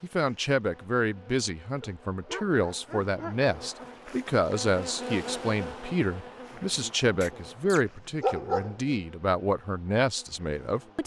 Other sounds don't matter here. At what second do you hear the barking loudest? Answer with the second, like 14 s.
8 s.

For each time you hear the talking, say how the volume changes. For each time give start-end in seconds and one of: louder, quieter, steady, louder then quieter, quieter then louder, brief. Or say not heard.
0.0-11.0 steady.